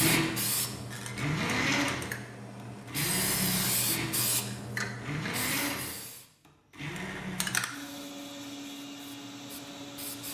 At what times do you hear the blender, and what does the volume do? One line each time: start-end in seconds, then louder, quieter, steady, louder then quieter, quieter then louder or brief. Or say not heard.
0.0-10.2 quieter.